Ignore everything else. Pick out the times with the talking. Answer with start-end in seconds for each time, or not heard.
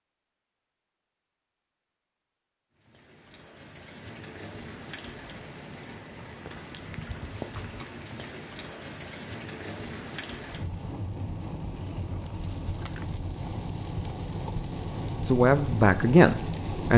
15.2-16.9.